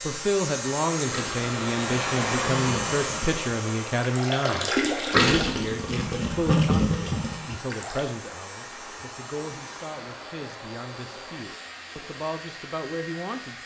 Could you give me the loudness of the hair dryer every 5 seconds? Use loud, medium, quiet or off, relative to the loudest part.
loud, medium, medium.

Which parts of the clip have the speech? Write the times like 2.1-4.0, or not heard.
0.0-13.6.